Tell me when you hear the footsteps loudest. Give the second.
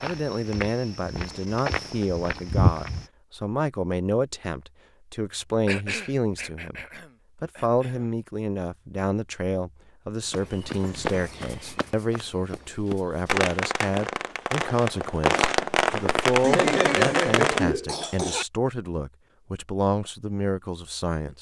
3 s.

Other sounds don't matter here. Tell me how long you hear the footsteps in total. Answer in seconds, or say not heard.
6 s.